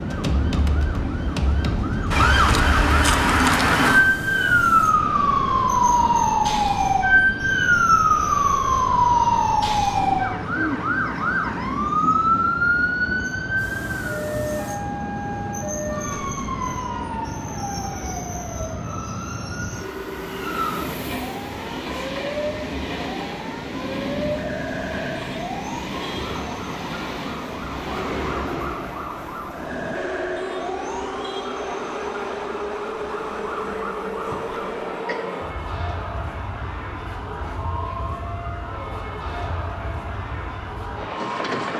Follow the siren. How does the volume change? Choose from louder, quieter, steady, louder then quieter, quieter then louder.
quieter.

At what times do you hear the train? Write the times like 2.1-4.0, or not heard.
0.0-41.7.